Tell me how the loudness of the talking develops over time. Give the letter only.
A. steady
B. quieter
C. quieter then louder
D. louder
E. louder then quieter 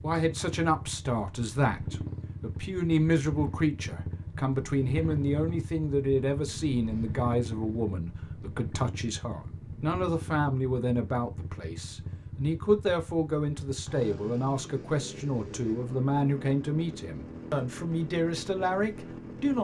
A.